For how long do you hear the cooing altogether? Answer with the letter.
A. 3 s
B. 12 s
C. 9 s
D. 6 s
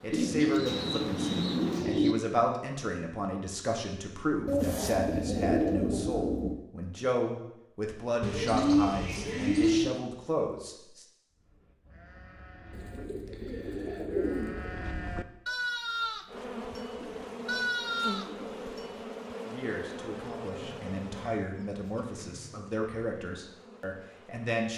B.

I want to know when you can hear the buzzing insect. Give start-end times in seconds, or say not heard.
0.0-1.9, 16.2-24.6.